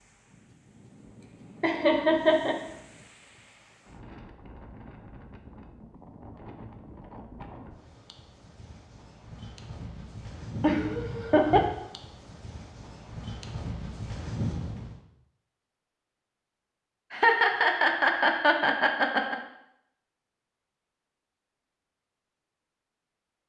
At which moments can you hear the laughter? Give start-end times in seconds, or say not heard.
1.2-2.5, 10.6-11.7, 17.1-19.4.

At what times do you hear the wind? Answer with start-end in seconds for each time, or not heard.
0.0-15.1.